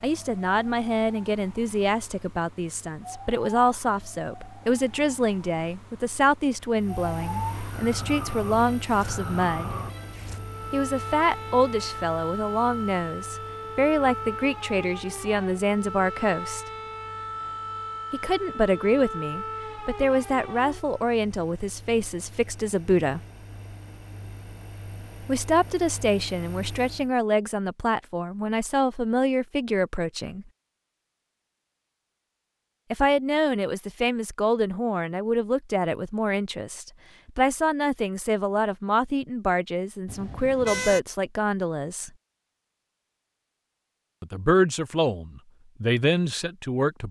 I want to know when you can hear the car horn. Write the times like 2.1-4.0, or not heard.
40.0-41.0.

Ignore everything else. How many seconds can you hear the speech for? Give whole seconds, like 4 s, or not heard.
38 s.